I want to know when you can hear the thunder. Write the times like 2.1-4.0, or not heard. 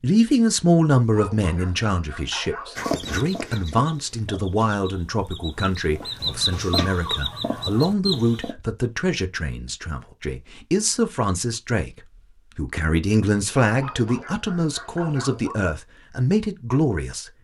not heard.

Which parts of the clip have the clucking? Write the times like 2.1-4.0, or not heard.
2.8-8.6.